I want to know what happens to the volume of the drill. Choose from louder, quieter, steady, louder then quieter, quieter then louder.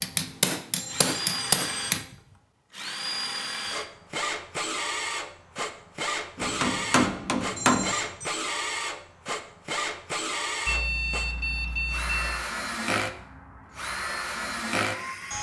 steady.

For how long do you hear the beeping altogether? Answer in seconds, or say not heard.
4 s.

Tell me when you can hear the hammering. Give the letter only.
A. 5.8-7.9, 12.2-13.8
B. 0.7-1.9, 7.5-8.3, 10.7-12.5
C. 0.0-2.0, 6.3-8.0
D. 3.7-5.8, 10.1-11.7
C.